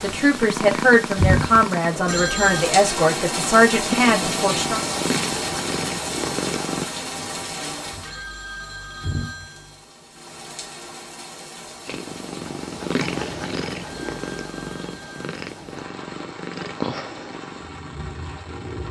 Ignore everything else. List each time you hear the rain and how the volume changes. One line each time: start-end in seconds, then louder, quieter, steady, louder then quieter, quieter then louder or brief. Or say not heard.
0.0-18.8 quieter.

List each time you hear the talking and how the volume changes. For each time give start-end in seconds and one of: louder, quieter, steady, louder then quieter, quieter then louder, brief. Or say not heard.
0.0-4.8 steady.